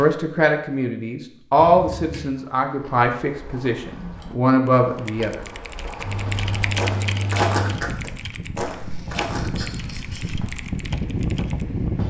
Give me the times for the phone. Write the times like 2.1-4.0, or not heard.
not heard.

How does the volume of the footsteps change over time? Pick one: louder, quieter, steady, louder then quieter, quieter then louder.
louder then quieter.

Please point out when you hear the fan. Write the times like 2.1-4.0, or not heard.
6.0-12.0.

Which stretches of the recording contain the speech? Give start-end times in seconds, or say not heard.
0.0-5.4.